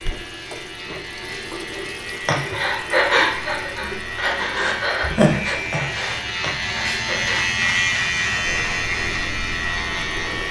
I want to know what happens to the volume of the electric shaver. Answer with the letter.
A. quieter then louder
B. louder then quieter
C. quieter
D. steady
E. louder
E.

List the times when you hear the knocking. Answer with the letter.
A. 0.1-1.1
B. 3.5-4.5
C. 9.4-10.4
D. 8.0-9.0
A.